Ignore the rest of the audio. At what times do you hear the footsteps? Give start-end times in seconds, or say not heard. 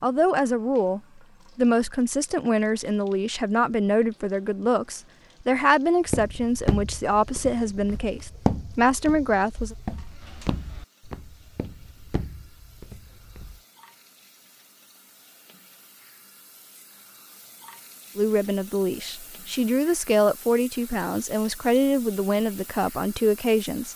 6.0-13.6.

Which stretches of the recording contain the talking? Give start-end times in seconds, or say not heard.
0.0-9.8, 18.1-23.9.